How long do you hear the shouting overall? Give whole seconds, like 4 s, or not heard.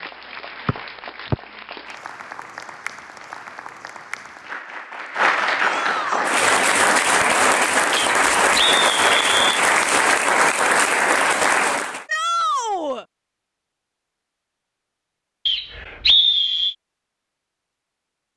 2 s.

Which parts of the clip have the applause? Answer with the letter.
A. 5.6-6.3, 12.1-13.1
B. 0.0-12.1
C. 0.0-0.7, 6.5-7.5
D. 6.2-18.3
B.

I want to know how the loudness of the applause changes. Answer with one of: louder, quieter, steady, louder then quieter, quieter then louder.
louder.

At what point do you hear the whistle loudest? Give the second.
16 s.